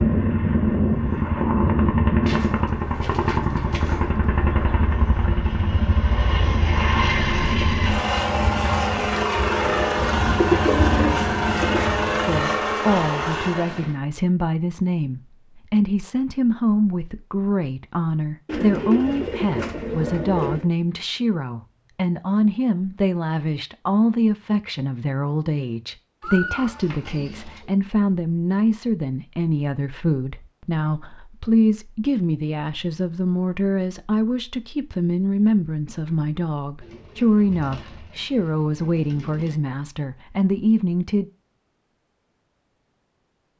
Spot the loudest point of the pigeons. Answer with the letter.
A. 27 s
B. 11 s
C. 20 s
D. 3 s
B.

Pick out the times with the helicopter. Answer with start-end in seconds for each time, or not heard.
0.0-13.9.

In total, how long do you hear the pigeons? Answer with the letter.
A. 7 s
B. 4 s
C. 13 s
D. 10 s
D.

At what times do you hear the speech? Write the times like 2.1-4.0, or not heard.
12.2-41.2.